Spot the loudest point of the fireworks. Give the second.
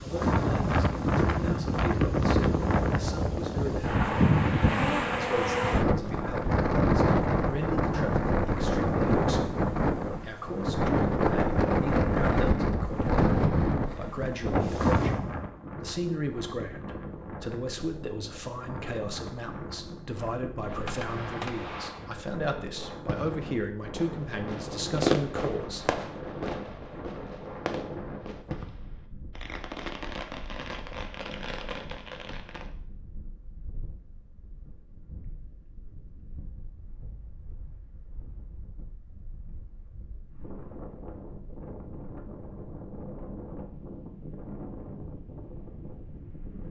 25 s.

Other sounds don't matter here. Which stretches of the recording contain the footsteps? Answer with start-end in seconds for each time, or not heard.
not heard.